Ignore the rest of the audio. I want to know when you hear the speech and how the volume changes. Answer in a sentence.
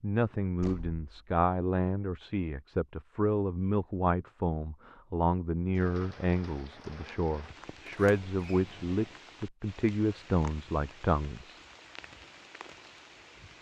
You can hear the speech from 0.0 to 11.6 s, at a steady volume.